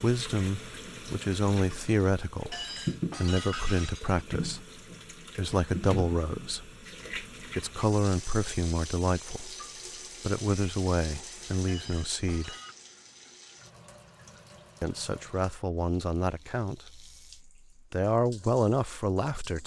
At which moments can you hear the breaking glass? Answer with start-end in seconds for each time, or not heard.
2.5-4.2, 11.7-12.8.